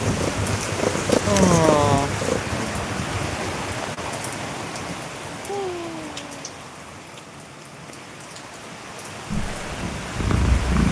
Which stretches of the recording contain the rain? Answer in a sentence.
The rain can be heard from 0.0 to 10.8 s.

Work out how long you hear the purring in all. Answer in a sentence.
You can hear the purring for 4 seconds altogether.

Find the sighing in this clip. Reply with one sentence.
You can hear the sighing from 1.2 to 2.8 s and from 5.5 to 6.5 s.